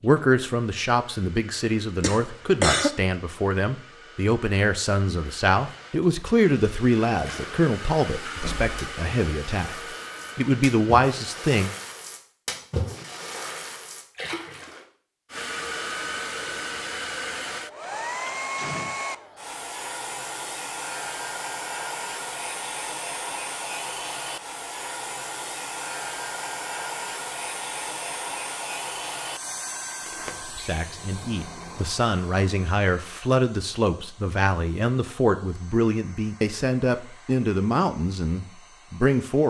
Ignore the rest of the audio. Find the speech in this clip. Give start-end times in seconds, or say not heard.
0.0-11.7, 30.6-39.4.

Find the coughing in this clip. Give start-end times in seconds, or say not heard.
2.0-2.9.